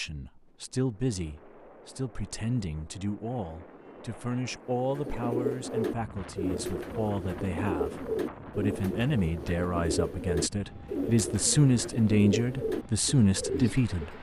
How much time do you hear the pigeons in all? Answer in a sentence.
The pigeons can be heard for 9 seconds in total.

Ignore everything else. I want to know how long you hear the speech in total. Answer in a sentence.
You can hear the speech for 14 seconds altogether.